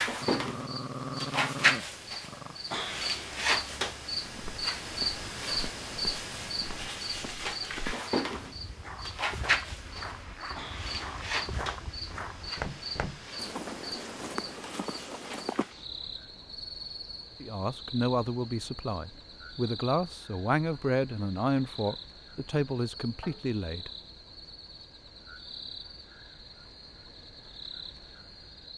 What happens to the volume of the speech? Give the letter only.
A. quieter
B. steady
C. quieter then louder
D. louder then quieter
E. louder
B.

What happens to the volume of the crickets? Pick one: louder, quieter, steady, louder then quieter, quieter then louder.
quieter.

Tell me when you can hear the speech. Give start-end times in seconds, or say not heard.
17.4-23.9.